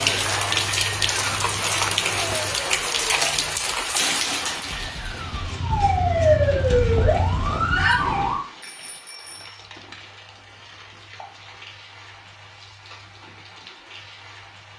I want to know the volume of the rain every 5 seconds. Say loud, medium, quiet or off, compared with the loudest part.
loud, quiet, quiet.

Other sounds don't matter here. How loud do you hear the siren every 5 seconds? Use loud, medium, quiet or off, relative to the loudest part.
quiet, loud, off.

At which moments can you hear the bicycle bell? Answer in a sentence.
The bicycle bell can be heard from 8.6 to 9.6 s.